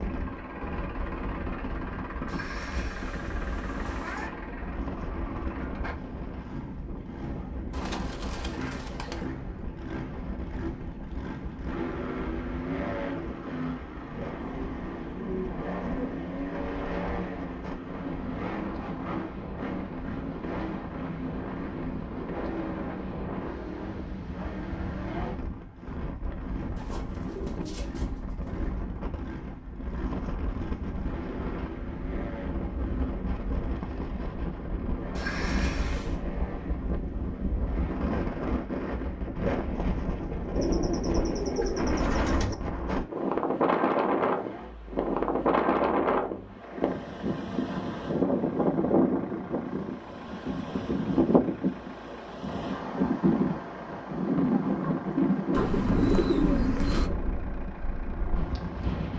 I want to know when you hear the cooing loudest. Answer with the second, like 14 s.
56 s.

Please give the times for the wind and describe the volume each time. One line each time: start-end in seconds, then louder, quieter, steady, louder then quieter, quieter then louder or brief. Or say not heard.
0.0-59.1 louder.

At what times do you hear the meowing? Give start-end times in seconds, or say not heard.
2.2-4.3, 35.1-36.2.